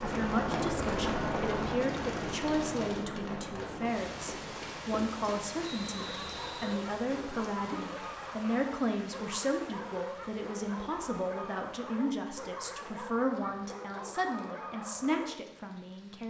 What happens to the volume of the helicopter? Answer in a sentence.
The loudness of the helicopter goes down.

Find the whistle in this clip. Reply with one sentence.
You can hear the whistle from 5.6 to 6.8 s.